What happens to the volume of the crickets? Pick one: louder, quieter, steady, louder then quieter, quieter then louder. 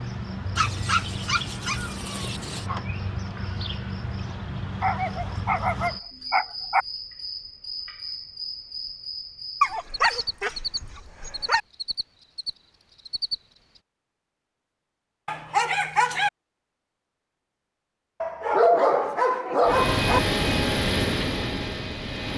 steady.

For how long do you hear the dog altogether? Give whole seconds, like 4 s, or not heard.
9 s.